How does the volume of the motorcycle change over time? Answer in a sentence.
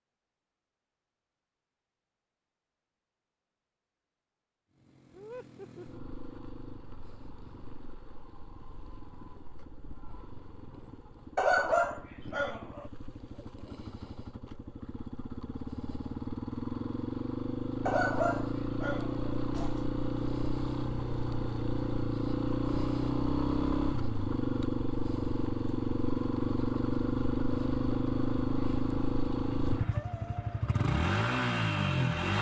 The volume of the motorcycle goes up.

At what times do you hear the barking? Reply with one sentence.
You can hear the barking from 11.3 to 12.9 s and from 17.9 to 19.9 s.